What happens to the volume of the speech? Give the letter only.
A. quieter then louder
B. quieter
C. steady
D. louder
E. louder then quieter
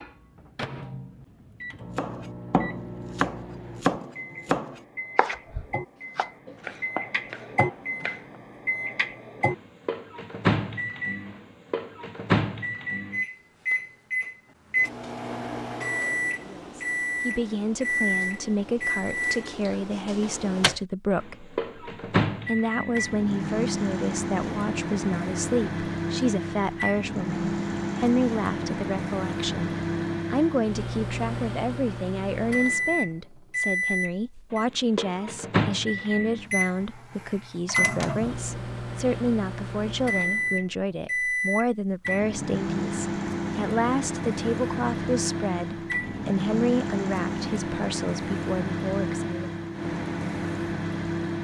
C.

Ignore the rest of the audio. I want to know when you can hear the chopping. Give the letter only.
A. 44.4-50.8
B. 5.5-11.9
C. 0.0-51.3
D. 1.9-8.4
D.